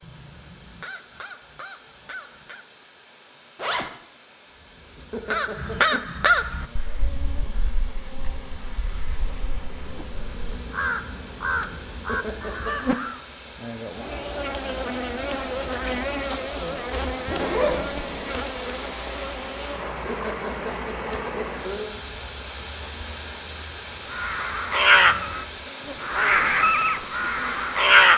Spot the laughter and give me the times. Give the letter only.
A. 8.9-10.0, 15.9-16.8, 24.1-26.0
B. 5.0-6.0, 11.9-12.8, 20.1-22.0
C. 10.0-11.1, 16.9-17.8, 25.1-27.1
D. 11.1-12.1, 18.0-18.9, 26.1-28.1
B.